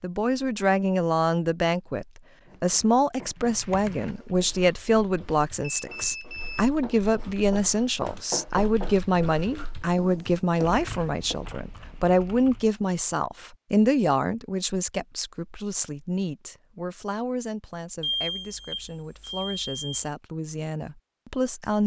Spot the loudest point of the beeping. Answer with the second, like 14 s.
18 s.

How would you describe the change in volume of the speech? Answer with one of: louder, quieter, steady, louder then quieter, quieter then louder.
quieter.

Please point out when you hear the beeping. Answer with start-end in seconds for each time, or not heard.
5.8-6.5, 18.0-20.1.